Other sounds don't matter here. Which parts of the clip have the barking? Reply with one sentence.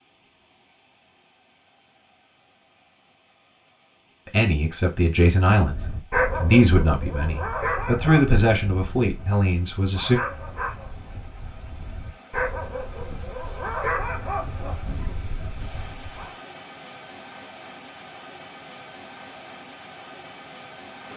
The barking can be heard from 5.5 to 16.3 s.